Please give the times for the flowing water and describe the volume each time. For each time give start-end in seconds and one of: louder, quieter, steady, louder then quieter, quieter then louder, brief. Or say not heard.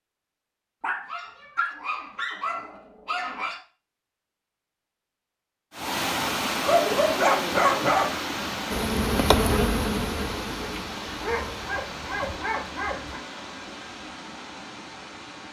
5.7-15.4 quieter.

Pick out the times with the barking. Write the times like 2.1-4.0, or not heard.
0.8-3.6, 6.7-8.1, 11.2-13.2.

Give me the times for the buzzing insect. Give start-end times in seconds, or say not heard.
8.7-12.4.